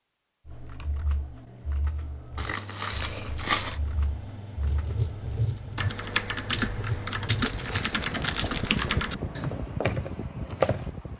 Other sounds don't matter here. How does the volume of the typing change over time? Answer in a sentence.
The volume of the typing goes up.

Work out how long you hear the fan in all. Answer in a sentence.
You can hear the fan for 9 seconds altogether.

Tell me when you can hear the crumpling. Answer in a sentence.
You can hear the crumpling from 2.4 to 3.8 s and from 7.4 to 8.8 s.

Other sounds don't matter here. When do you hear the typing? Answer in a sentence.
You can hear the typing from 0.5 to 10.9 s.